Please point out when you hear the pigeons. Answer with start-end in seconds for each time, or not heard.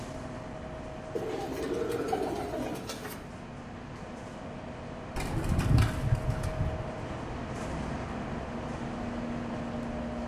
1.1-3.2, 5.2-6.8.